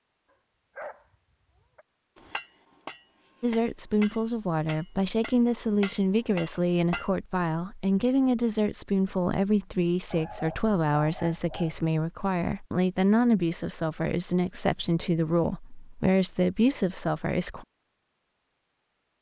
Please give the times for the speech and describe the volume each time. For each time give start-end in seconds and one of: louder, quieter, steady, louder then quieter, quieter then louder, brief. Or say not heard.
3.4-17.6 steady.